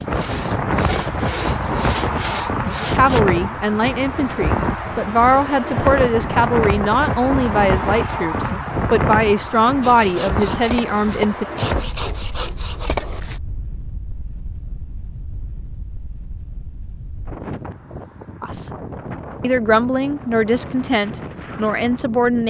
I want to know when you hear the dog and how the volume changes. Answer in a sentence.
You can't hear the dog here.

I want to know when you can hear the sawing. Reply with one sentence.
The sawing can be heard from 0.0 to 3.2 s and from 9.8 to 13.4 s.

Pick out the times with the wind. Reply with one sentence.
The wind can be heard from 0.0 to 22.4 s.